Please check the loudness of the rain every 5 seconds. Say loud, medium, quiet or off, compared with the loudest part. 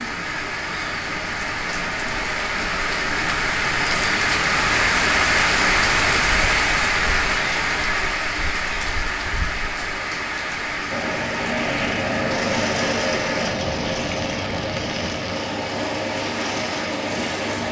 loud, loud, medium, medium.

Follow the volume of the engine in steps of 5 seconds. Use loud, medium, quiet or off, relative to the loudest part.
off, off, loud, loud.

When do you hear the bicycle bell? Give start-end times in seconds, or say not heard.
not heard.